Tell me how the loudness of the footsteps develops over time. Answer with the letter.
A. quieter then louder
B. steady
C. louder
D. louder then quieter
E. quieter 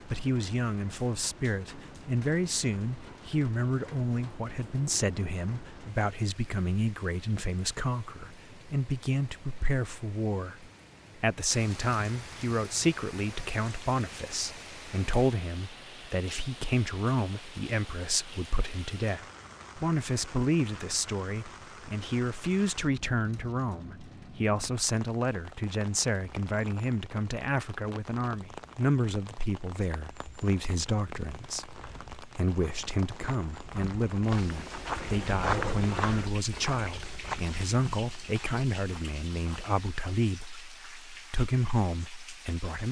D.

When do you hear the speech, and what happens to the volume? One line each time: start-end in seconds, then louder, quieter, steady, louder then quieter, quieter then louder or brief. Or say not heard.
0.1-42.8 steady.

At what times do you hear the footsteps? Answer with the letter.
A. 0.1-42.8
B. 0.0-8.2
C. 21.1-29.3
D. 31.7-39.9
D.